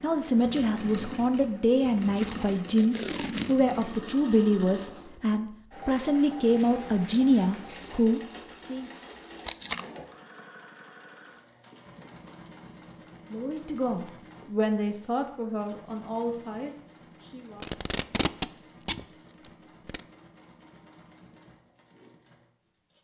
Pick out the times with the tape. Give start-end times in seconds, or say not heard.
2.1-3.8, 9.4-9.8, 17.6-20.0.